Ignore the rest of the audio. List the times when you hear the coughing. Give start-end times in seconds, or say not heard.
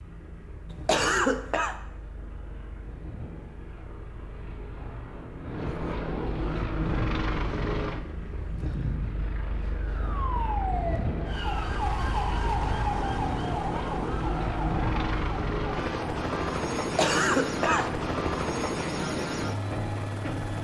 0.7-1.8, 16.8-18.3.